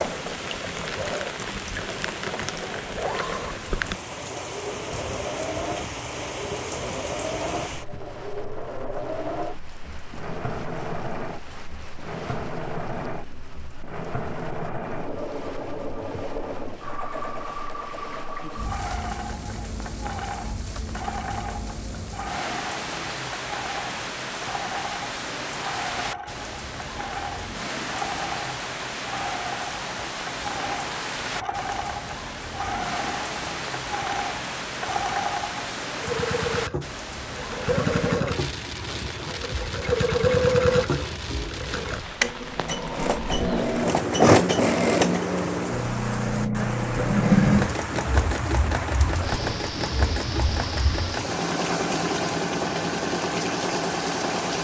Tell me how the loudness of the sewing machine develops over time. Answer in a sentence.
The loudness of the sewing machine goes up.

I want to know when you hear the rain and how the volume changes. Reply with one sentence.
You can hear the rain from 0.0 to 54.6 s, getting quieter then louder.